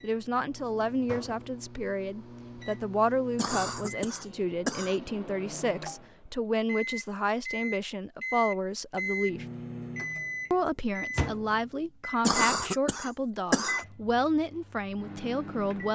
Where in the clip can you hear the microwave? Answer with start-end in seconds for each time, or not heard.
0.0-15.8.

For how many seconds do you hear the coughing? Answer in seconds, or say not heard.
3 s.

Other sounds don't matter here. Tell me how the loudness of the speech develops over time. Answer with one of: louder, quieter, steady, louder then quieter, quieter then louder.
steady.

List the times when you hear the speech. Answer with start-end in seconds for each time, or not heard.
0.0-9.4, 10.5-15.8.